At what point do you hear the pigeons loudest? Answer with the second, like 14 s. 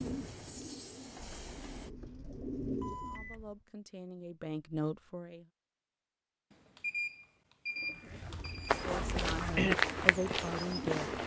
10 s.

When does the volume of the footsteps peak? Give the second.
10 s.